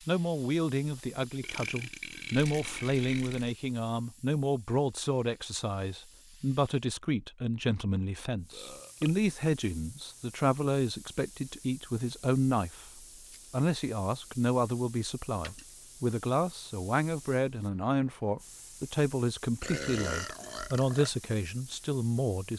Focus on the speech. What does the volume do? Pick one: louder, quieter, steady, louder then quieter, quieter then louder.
steady.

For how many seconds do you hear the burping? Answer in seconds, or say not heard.
4 s.